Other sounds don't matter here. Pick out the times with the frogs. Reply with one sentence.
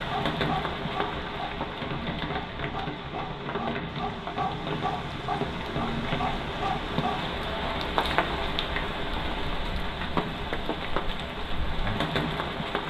You can hear the frogs from 0.0 to 7.4 s.